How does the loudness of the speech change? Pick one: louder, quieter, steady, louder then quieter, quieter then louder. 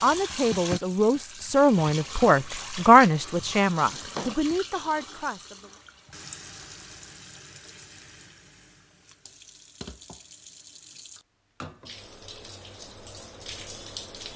louder then quieter.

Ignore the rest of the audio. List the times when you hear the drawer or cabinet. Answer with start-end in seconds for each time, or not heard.
3.8-4.4.